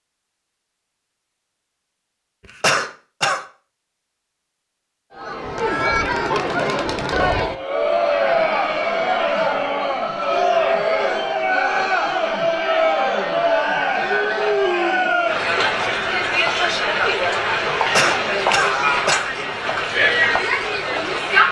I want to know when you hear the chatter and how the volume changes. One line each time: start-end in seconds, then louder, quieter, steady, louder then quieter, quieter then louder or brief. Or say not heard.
5.2-21.4 steady.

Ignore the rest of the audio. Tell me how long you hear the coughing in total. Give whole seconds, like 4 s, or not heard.
2 s.